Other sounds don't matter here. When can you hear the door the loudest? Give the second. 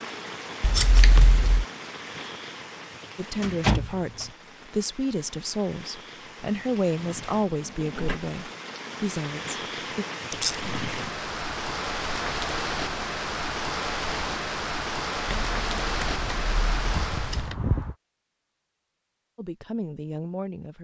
4 s.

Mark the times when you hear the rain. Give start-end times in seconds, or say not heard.
0.0-17.6.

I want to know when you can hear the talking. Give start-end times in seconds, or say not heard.
3.1-10.1, 19.4-20.8.